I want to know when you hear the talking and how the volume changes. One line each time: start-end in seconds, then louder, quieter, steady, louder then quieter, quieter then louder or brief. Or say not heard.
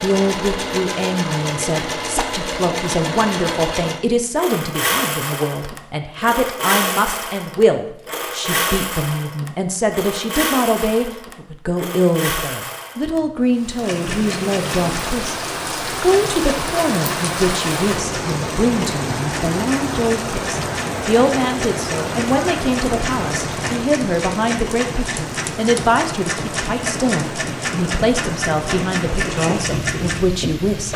0.0-30.9 steady.